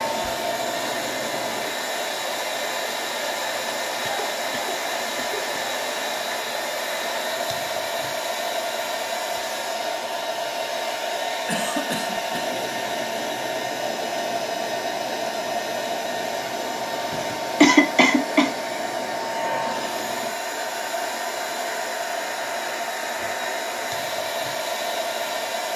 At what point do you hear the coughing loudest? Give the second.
18 s.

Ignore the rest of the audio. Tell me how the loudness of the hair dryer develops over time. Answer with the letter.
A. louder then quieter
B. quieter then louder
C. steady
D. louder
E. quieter
C.